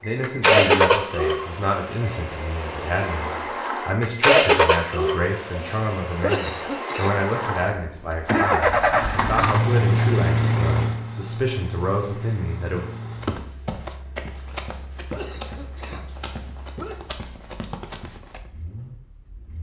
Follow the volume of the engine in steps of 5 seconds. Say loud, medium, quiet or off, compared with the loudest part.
loud, loud, medium, quiet.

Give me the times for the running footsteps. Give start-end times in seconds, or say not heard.
13.2-18.5.